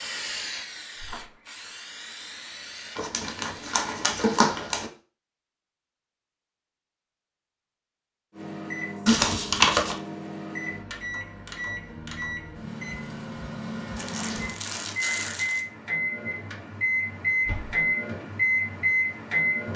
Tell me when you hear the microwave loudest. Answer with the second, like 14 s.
19 s.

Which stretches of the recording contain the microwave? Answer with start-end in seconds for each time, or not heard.
8.3-19.7.